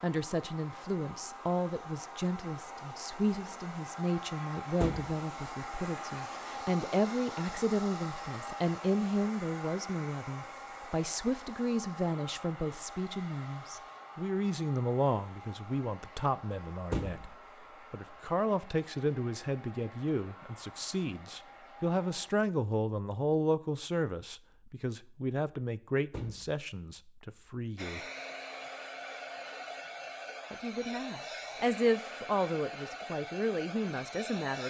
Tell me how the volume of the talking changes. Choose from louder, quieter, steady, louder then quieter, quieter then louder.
steady.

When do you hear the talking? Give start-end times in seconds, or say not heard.
0.0-28.0, 30.5-34.6.